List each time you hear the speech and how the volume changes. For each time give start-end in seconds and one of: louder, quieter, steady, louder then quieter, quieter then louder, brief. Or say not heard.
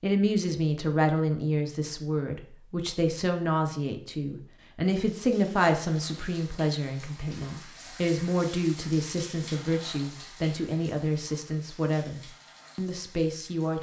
0.0-13.7 steady.